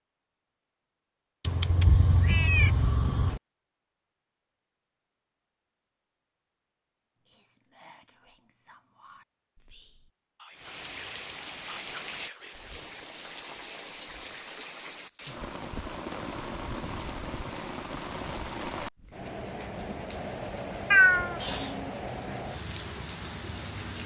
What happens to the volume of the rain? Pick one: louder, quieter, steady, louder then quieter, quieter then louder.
steady.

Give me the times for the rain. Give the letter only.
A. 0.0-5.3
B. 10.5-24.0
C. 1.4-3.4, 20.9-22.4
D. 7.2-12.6
B.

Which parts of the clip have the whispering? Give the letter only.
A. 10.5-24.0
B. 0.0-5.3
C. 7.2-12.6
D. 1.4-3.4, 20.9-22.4
C.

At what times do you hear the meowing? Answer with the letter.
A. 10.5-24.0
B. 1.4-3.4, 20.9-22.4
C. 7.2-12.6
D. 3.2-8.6
B.